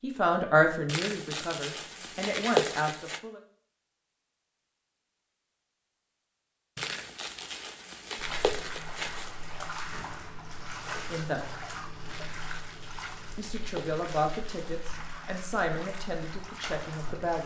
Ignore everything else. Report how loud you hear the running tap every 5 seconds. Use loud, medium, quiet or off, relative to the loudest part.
off, loud, loud, loud.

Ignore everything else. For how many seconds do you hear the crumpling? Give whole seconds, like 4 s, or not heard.
8 s.